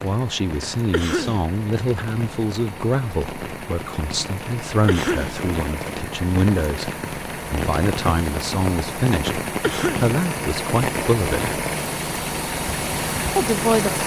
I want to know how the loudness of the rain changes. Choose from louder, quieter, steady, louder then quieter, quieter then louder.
louder.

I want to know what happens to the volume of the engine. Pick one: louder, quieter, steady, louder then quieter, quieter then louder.
louder.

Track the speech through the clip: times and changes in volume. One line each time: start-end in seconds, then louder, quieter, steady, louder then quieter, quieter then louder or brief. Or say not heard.
0.0-11.5 steady
13.3-14.0 brief.